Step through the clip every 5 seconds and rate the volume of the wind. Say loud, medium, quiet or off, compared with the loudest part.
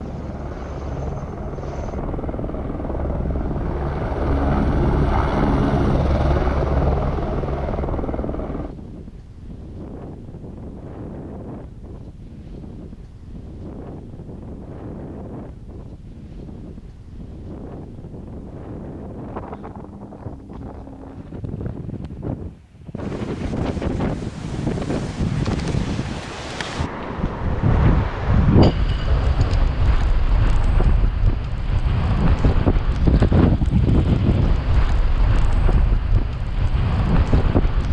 quiet, quiet, quiet, quiet, medium, loud, loud, loud.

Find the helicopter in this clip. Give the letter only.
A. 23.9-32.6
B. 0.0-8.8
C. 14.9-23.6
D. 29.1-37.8
B.